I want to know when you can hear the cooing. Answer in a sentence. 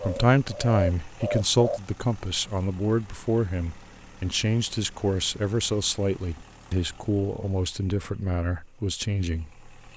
You can hear the cooing from 0.0 to 1.8 s.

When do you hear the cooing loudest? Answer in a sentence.
The loudest moment of the cooing is at 1 second.